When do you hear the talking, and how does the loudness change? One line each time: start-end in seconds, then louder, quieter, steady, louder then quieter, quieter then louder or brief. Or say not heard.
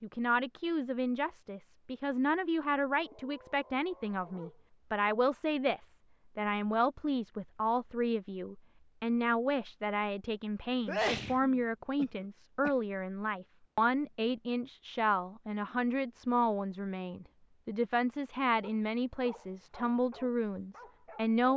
0.0-21.5 steady.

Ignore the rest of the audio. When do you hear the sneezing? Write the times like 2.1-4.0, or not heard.
10.8-12.7.